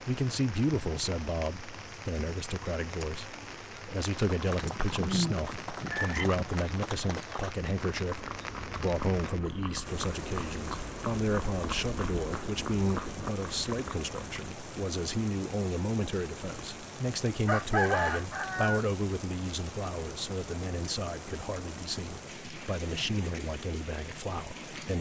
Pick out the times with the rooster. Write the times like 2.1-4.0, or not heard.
4.7-6.2, 17.4-18.9.